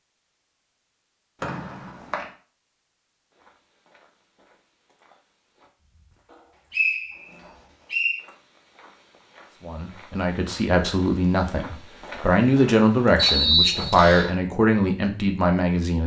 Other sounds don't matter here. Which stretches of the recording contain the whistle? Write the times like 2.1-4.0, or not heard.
1.4-2.2, 6.3-8.2, 13.2-14.3.